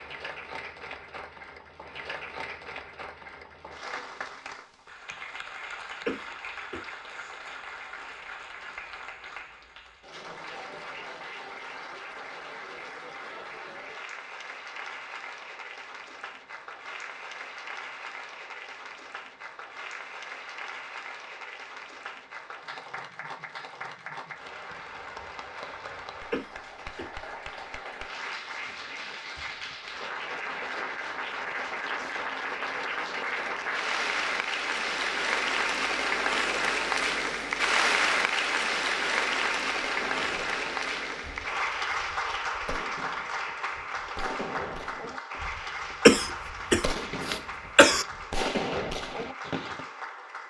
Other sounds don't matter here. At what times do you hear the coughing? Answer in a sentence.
You can hear the coughing from 6.0 to 6.8 s, from 26.3 to 27.6 s and from 46.0 to 48.0 s.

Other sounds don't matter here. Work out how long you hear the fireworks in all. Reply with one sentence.
The fireworks can be heard for 10 seconds in total.